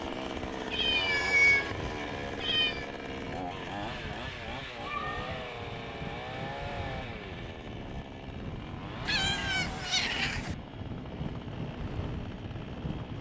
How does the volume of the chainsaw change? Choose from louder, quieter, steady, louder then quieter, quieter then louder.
quieter.